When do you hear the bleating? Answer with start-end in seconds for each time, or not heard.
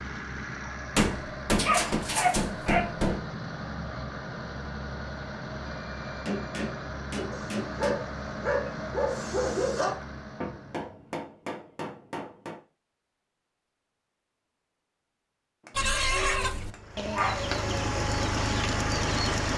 not heard.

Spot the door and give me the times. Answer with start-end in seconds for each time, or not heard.
not heard.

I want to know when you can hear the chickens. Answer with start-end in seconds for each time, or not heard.
15.7-19.5.